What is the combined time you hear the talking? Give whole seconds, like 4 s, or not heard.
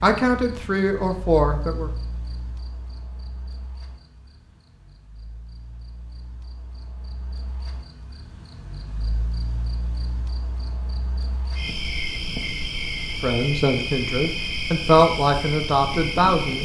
5 s.